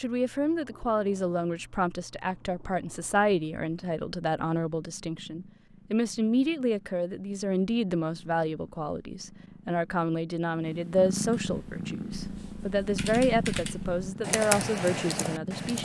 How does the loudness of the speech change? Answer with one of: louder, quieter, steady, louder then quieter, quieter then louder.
steady.